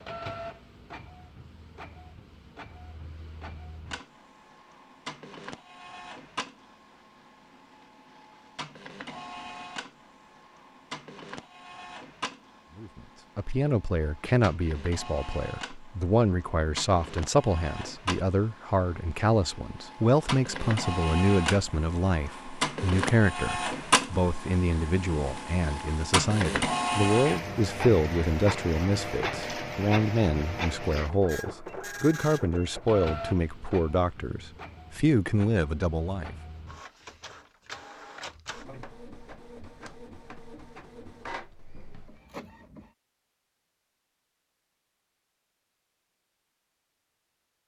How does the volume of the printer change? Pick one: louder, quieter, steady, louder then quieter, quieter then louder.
louder then quieter.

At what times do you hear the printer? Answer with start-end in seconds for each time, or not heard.
0.0-42.9.